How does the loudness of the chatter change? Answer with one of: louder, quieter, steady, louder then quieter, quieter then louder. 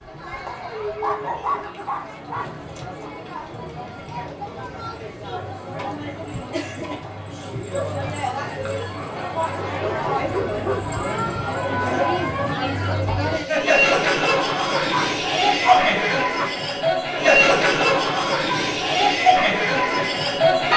louder.